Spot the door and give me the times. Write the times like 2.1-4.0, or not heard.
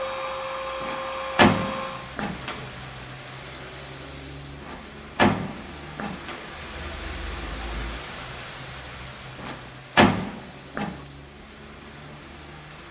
0.8-2.6, 4.6-6.4, 9.4-11.0.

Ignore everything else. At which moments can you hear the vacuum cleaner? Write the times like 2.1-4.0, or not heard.
0.0-2.1.